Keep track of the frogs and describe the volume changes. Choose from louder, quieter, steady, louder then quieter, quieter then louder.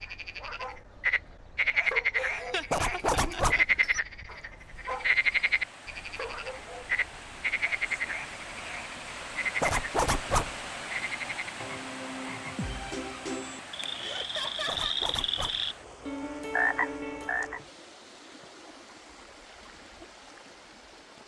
quieter then louder.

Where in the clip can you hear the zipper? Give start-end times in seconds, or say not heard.
2.7-3.6, 9.6-10.6, 14.7-15.6.